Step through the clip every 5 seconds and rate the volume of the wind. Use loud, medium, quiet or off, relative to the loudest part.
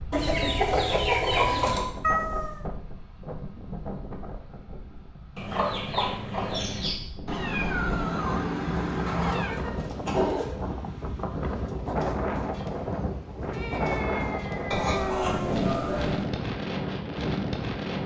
medium, medium, loud, loud.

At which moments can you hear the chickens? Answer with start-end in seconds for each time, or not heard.
0.1-1.9, 5.3-7.0, 9.1-10.6, 14.7-16.2.